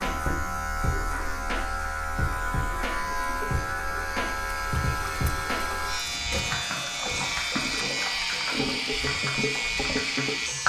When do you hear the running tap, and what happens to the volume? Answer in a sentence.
The running tap can be heard from 0.1 to 10.6 s, getting louder.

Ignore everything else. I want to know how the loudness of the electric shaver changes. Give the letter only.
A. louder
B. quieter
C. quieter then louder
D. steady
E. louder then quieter
D.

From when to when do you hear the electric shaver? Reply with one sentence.
You can hear the electric shaver from 0.0 to 10.6 s.